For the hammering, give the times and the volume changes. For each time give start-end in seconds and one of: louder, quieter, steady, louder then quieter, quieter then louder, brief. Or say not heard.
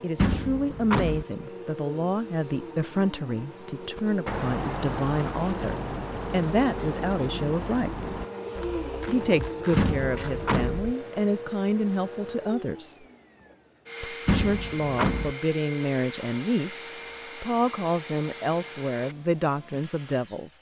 not heard.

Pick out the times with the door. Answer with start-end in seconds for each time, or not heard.
0.1-1.2, 9.8-10.8, 14.2-15.3.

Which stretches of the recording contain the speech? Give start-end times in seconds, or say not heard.
0.0-8.1, 9.1-13.0, 14.0-20.5.